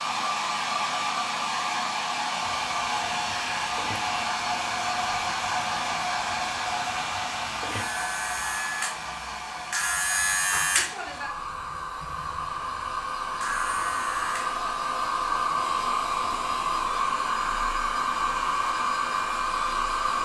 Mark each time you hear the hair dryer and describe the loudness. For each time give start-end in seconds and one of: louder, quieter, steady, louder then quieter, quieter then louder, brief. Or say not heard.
0.0-20.2 quieter then louder.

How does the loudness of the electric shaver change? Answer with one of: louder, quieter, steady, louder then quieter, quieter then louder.
louder then quieter.